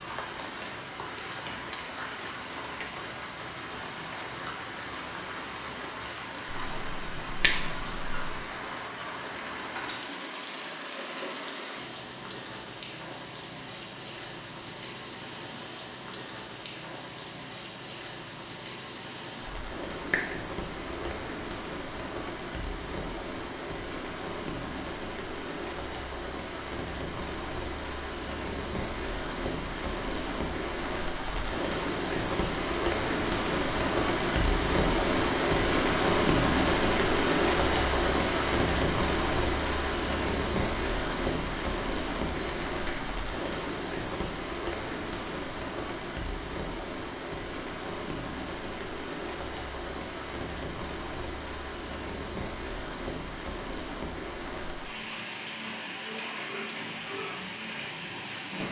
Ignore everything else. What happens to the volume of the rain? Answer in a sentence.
The loudness of the rain goes up, then down.